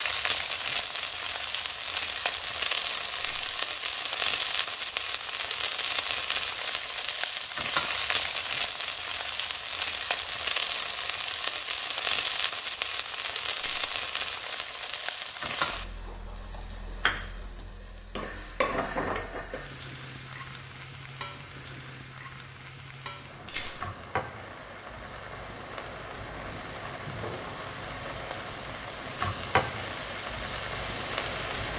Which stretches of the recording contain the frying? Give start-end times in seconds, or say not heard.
0.0-31.7.